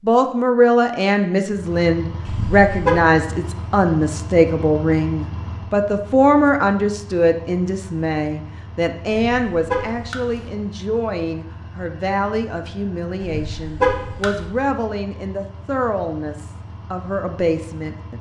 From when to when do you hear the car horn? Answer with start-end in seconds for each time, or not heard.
2.2-3.0, 9.1-10.4, 13.2-14.4.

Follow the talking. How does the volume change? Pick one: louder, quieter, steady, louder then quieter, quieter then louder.
quieter.